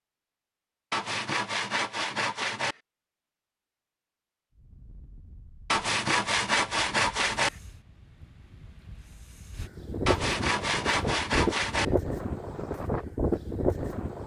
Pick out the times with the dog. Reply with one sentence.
You can't hear the dog here.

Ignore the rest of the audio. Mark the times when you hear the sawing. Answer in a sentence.
You can hear the sawing from 0.9 to 2.8 s, from 5.7 to 7.5 s and from 10.1 to 11.8 s.